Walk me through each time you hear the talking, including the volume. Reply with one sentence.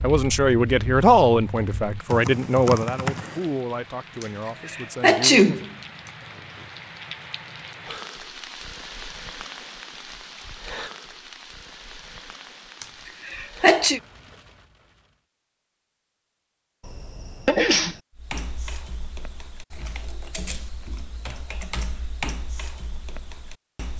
You can hear the talking from 0.0 to 5.7 s, getting quieter.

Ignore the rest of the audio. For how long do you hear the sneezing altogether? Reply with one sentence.
The sneezing can be heard for 4 seconds in total.